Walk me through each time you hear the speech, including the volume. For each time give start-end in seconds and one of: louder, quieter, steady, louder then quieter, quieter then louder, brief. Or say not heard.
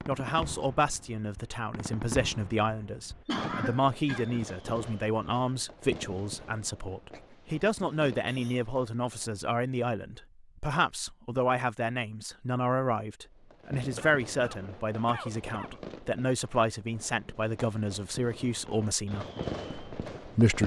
0.1-20.6 steady.